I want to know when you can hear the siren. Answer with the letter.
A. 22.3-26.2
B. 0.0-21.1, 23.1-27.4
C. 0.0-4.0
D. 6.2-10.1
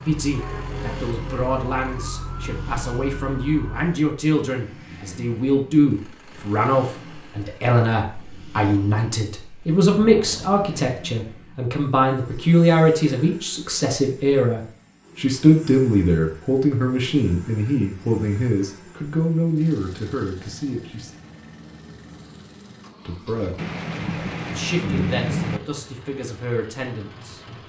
C.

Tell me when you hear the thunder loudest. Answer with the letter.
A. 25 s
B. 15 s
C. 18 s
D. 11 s
A.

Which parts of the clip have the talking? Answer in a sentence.
The talking can be heard from 0.0 to 21.1 s and from 23.1 to 27.4 s.